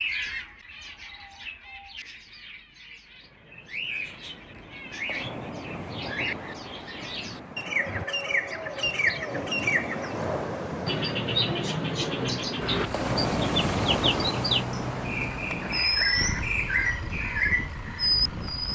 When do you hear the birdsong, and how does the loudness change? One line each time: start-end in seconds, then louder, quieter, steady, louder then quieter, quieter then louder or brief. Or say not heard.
0.0-18.6 louder.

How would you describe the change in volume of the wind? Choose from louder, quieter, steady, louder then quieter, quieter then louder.
louder then quieter.